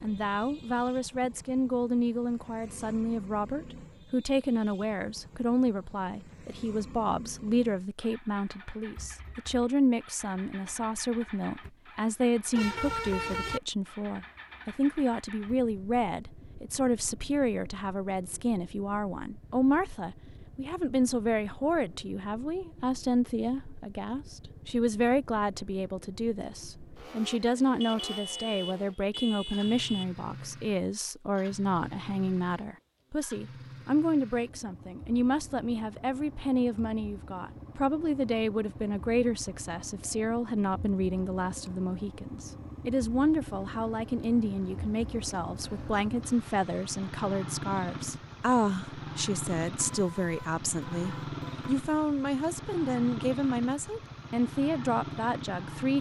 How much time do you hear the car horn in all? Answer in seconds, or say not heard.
5 s.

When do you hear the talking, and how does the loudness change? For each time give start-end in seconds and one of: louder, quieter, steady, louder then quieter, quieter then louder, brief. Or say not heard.
0.0-55.9 steady.